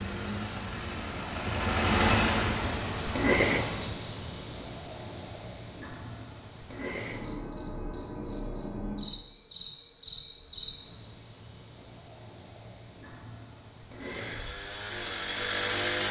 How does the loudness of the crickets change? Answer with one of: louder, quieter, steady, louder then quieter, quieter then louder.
quieter.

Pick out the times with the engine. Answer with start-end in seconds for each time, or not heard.
0.0-4.0, 13.9-16.0.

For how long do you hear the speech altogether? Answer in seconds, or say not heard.
not heard.